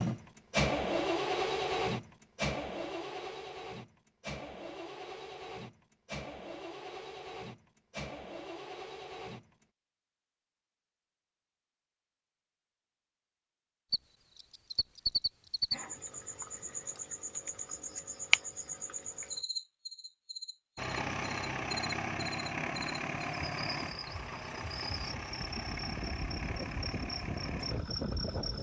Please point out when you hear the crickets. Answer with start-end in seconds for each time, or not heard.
13.9-28.5.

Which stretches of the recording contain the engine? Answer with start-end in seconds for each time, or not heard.
0.0-9.7, 20.8-28.5.